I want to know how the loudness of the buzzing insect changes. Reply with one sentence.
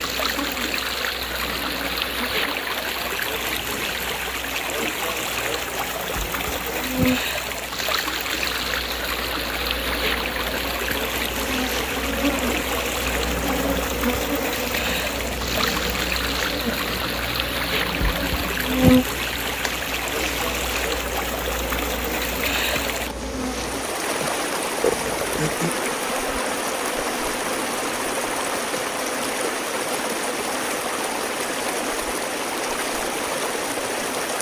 The volume of the buzzing insect goes up, then down.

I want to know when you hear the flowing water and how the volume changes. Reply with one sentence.
You can hear the flowing water from 0.0 to 34.3 s, at a steady volume.